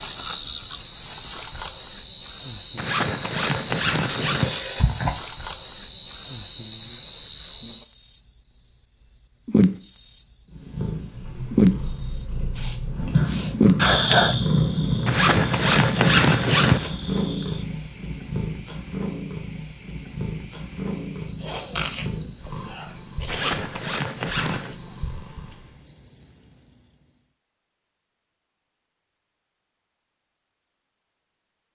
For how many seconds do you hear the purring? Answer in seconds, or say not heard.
15 s.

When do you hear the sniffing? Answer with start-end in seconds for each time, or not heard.
4.0-5.2, 12.5-13.6, 21.4-23.6.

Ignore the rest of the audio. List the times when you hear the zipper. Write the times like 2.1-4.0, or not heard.
2.8-4.6, 15.1-16.9, 23.2-24.8.